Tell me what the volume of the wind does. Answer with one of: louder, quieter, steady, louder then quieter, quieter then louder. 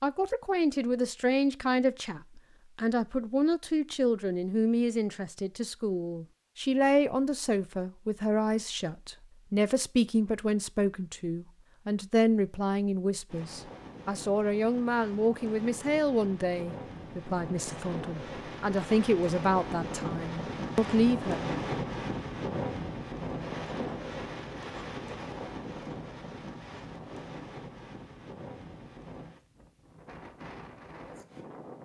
louder then quieter.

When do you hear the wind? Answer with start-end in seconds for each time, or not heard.
13.2-31.8.